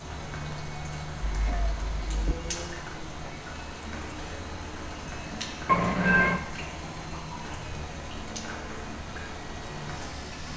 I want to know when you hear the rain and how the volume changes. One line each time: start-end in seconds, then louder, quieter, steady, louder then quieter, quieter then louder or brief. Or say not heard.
0.0-10.5 steady.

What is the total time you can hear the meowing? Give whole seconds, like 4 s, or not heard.
2 s.